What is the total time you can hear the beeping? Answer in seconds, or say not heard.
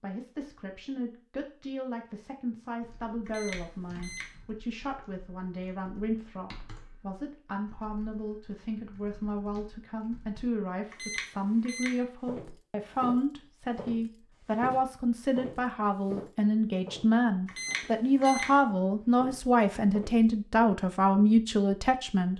3 s.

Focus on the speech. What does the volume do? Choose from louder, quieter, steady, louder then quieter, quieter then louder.
louder.